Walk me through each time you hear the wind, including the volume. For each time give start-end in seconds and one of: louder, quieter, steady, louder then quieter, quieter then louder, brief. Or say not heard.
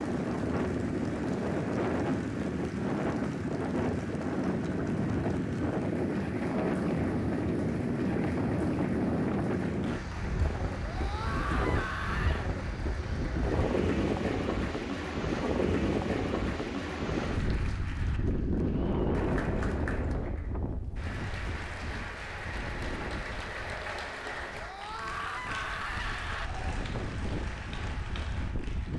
0.0-28.9 quieter.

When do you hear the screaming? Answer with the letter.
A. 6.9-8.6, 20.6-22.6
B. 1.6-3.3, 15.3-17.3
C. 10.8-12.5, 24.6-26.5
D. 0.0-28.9
C.